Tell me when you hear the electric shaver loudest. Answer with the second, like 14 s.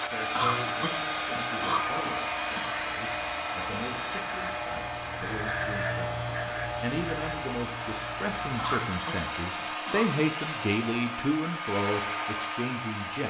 6 s.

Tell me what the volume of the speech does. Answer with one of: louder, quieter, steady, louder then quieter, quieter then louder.
louder.